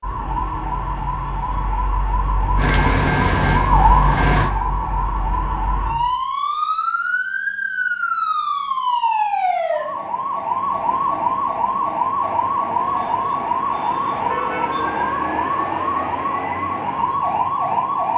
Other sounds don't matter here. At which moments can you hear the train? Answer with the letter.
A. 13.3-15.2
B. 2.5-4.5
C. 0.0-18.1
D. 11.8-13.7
B.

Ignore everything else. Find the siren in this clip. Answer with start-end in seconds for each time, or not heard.
0.0-18.1.